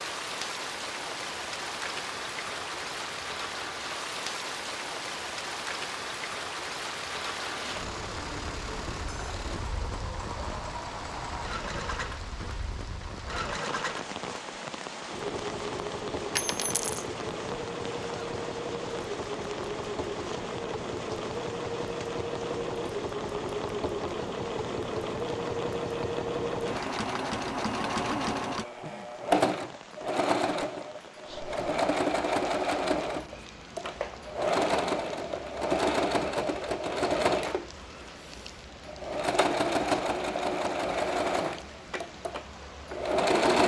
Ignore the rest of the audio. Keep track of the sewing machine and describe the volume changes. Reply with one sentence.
The loudness of the sewing machine goes up.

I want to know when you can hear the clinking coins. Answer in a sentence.
You can hear the clinking coins from 16.4 to 17.1 s.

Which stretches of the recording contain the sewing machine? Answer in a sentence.
You can hear the sewing machine from 7.5 to 43.6 s.